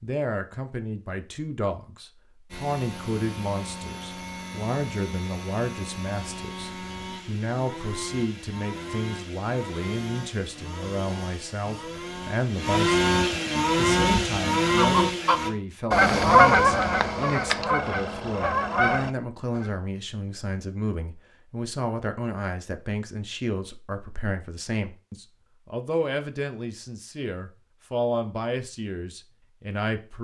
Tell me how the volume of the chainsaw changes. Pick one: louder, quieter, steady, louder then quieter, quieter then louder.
louder.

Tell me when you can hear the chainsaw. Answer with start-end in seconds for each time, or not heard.
2.5-15.5.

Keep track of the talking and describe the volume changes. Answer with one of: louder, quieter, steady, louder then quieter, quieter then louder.
steady.